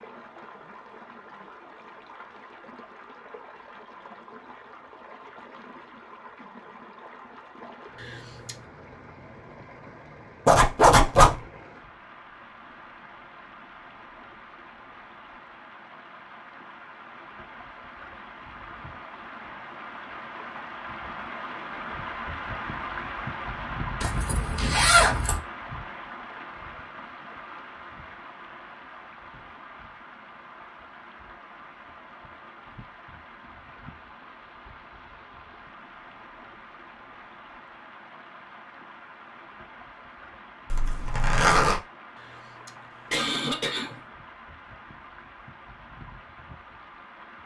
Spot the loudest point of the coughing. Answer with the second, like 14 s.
43 s.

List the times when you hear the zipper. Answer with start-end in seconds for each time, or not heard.
10.4-11.4, 24.0-25.4, 40.7-41.8.